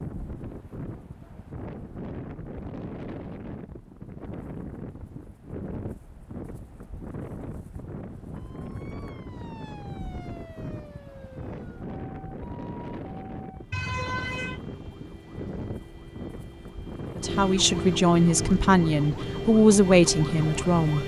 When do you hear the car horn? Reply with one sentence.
You can hear the car horn from 13.7 to 14.6 s.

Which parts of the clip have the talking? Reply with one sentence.
The talking can be heard from 17.1 to 21.0 s.